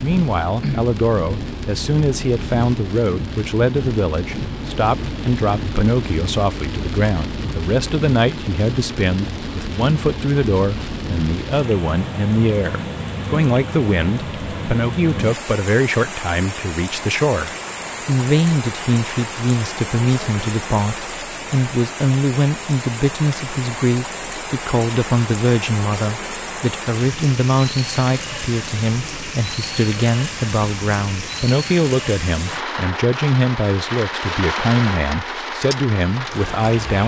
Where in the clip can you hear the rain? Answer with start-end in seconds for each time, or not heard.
0.0-37.0.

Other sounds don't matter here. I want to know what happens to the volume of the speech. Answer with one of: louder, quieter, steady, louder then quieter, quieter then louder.
steady.